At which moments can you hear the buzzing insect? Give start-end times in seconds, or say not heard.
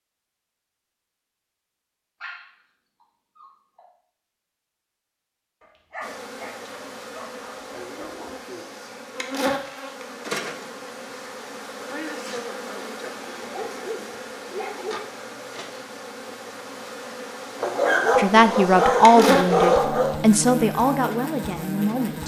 6.0-22.2.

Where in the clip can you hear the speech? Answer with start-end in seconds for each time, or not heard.
18.1-22.2.